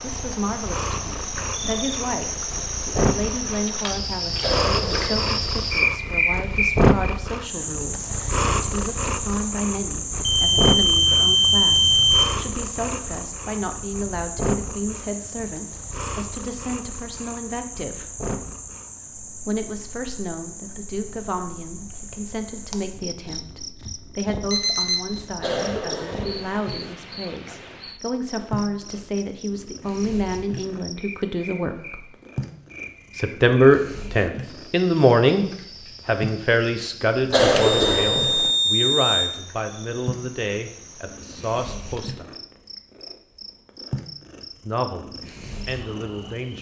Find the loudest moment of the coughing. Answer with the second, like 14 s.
38 s.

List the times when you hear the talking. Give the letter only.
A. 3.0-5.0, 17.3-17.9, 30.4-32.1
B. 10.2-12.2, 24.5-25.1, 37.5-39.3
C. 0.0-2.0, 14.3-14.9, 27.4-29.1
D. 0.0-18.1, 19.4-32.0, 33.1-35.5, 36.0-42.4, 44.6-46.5
D.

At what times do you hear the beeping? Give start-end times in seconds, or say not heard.
10.2-12.2, 24.5-25.1, 37.5-39.3.